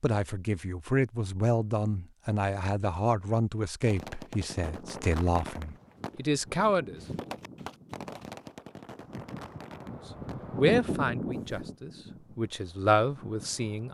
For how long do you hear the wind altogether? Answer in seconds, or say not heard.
9 s.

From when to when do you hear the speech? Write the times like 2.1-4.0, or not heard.
0.0-7.0, 10.6-13.8.